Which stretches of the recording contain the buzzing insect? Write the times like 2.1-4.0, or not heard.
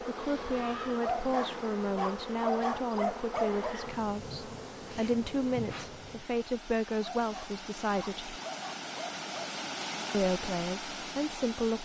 0.0-6.3.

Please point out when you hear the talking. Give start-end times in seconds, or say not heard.
0.0-8.3, 10.1-11.7.